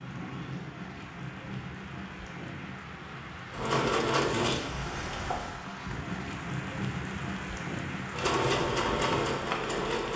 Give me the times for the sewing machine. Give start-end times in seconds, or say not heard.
3.5-5.5, 8.1-10.1.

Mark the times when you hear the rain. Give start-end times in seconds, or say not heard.
0.0-10.1.